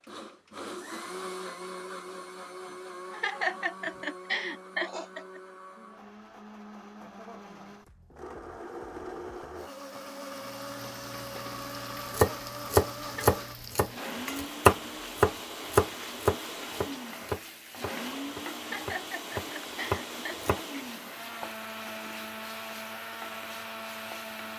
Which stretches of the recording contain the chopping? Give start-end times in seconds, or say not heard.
12.1-20.6.